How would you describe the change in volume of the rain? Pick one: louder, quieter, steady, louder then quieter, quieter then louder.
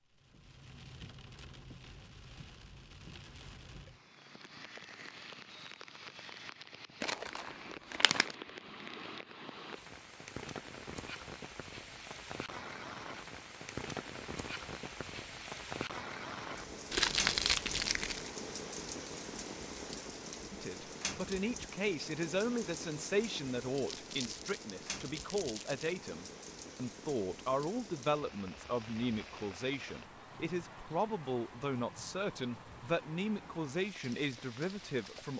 louder then quieter.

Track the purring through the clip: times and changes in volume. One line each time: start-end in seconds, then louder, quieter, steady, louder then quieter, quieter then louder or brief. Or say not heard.
not heard.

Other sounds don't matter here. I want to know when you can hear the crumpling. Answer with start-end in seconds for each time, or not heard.
7.0-8.3, 16.9-18.3, 23.9-25.9.